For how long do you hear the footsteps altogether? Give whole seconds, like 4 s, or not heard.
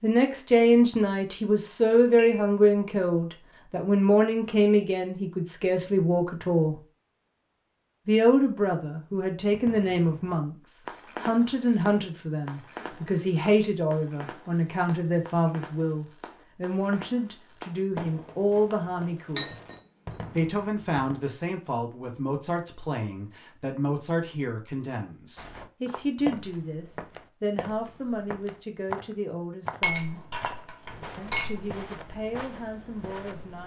8 s.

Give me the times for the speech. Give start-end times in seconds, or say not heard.
0.0-6.8, 8.1-19.6, 20.4-30.2, 31.1-33.6.